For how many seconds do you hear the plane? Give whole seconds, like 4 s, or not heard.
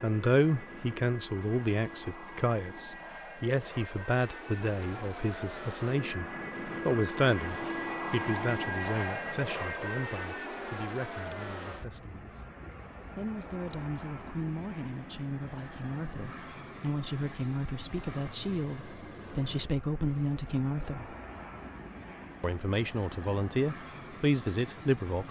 25 s.